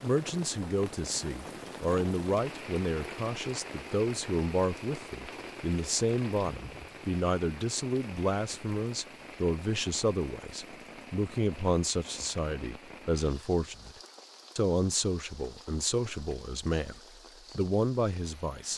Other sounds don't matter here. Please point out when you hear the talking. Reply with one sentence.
The talking can be heard from 0.0 to 13.9 s and from 14.6 to 18.7 s.